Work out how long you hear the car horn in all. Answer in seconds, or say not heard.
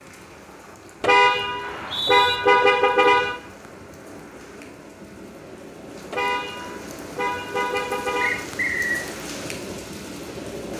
5 s.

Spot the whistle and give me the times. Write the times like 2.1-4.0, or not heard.
1.6-2.4, 8.2-9.1.